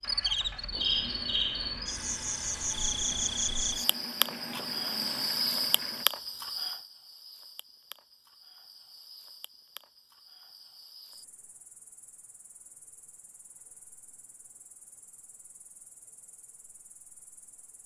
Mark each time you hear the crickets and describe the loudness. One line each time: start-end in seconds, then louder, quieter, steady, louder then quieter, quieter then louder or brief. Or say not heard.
0.0-17.8 quieter.